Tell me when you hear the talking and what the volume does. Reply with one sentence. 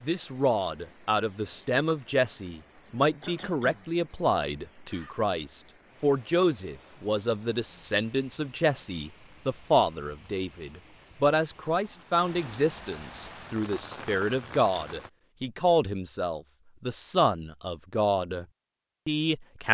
The talking can be heard from 0.0 to 18.4 s, at a steady volume; and briefly from 19.1 to 19.6 s.